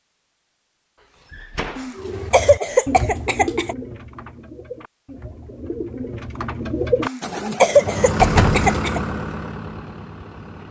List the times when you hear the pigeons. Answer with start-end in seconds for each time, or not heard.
1.9-7.8.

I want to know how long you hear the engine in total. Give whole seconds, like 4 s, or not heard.
3 s.